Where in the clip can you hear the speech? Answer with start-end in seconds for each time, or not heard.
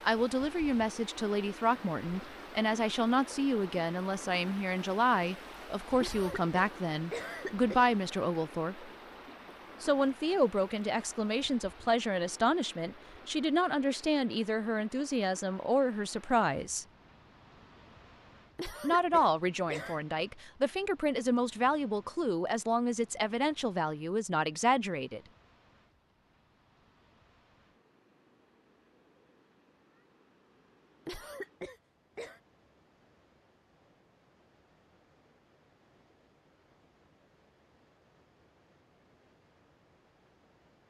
0.0-8.8, 9.8-16.9, 18.8-25.2.